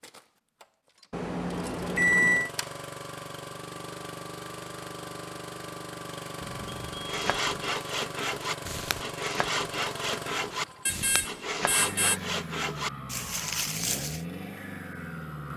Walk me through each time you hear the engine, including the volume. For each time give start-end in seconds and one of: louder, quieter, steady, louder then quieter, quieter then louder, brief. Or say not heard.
0.0-15.5 steady.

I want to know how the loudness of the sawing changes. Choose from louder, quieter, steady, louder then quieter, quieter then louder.
steady.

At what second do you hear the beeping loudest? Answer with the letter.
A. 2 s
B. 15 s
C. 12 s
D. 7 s
A.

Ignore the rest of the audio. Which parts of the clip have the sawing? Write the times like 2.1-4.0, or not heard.
7.0-14.2.